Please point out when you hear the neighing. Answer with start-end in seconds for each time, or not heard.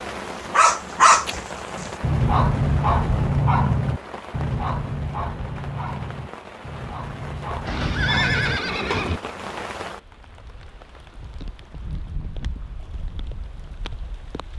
7.7-9.2.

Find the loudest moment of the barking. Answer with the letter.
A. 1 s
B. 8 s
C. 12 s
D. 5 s
A.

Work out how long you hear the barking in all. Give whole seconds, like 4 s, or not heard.
9 s.